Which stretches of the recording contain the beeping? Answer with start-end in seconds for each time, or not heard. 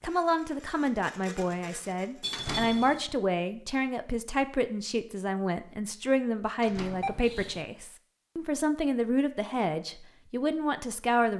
2.2-3.0, 7.0-7.7.